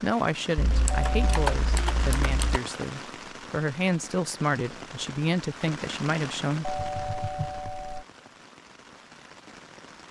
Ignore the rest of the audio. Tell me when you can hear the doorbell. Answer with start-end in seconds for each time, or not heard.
0.9-1.4, 6.6-8.1.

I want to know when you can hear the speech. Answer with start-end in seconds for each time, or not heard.
0.0-6.7.